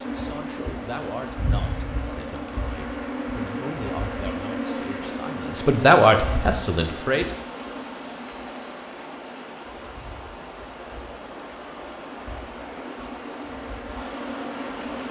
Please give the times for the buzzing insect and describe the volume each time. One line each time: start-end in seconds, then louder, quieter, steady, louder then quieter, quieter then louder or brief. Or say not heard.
0.0-15.0 quieter then louder.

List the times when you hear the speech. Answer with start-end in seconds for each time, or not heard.
0.0-7.2.